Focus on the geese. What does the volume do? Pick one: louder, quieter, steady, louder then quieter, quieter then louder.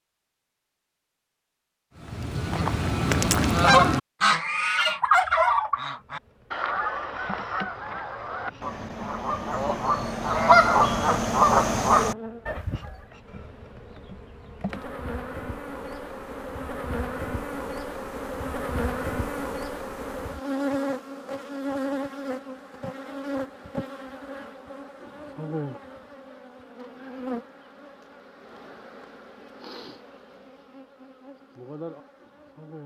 quieter then louder.